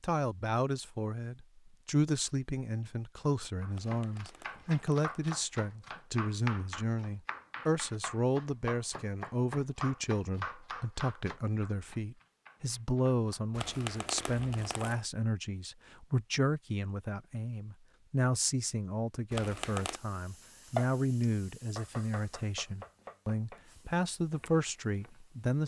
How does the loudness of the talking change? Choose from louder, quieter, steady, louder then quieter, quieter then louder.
steady.